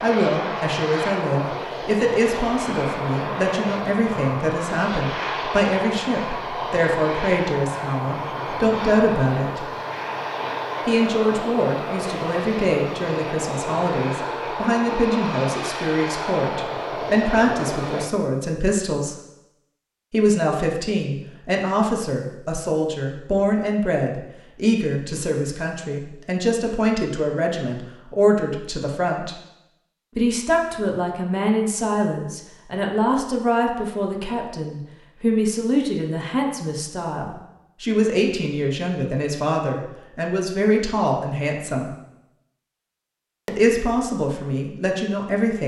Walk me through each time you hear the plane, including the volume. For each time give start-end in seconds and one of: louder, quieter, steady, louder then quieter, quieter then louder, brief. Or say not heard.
0.0-18.1 steady.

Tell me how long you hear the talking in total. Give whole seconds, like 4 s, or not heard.
41 s.